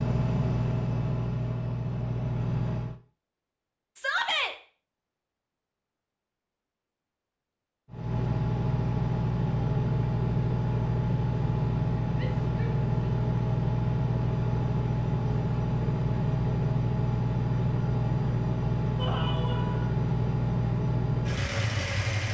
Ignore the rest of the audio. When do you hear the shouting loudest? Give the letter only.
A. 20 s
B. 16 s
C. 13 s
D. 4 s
D.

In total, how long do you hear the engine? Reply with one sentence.
You can hear the engine for 17 seconds altogether.